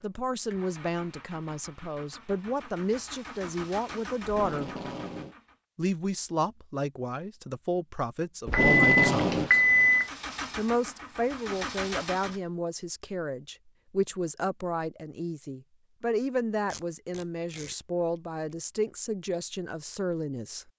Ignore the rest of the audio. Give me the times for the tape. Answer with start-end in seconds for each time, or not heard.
4.2-5.3, 8.4-9.5, 16.7-17.8.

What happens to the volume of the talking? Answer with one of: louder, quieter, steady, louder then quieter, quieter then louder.
steady.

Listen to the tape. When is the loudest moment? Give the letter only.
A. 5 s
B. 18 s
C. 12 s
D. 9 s
D.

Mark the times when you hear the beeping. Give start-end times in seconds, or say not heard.
8.5-10.1.